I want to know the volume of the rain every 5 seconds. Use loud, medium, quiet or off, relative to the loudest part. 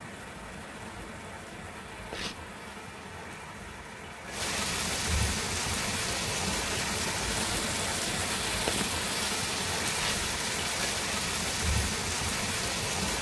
medium, loud, loud.